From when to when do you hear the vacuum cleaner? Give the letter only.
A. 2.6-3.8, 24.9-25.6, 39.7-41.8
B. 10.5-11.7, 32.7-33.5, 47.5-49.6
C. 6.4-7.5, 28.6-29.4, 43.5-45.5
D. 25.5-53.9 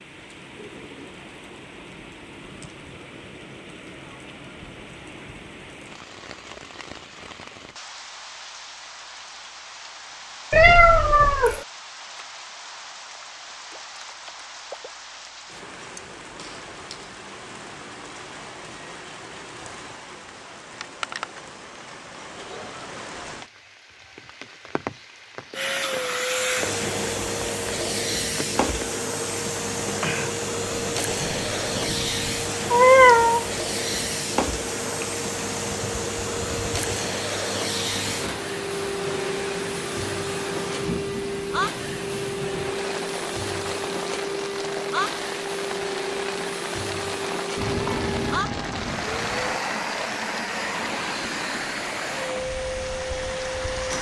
D.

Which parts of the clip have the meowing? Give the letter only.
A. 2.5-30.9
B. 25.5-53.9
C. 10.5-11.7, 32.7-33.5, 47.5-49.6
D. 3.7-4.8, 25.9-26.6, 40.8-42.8
C.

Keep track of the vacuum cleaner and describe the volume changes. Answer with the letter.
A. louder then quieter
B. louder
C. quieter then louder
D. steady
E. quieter
D.